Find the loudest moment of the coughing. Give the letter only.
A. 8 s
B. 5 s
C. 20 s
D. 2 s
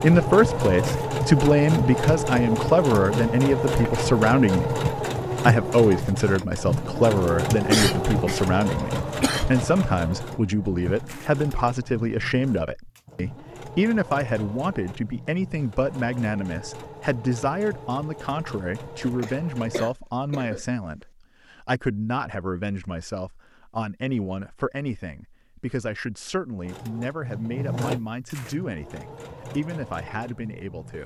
A.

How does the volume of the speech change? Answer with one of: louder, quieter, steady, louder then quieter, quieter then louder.
quieter.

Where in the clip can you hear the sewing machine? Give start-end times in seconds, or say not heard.
0.0-19.9, 26.6-31.0.